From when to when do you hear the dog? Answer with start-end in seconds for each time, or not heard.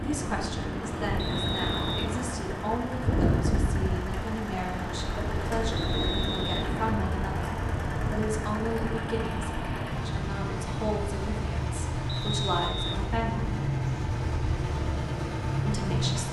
not heard.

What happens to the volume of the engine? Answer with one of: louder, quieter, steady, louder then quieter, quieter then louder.
louder.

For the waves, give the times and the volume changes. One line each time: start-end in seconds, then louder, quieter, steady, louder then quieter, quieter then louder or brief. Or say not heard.
0.0-16.2 quieter.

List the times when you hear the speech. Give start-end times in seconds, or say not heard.
0.0-13.6, 15.7-16.2.